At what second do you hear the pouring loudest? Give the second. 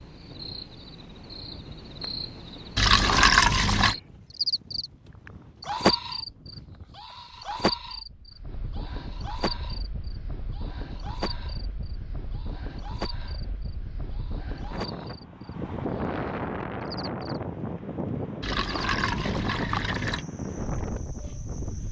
3 s.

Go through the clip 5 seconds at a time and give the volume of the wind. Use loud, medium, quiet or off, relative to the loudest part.
quiet, quiet, medium, loud, loud.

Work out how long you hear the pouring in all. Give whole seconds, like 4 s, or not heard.
3 s.